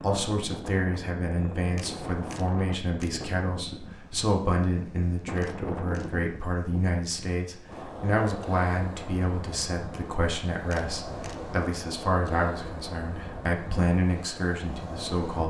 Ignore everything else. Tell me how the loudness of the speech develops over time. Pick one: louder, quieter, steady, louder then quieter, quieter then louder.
steady.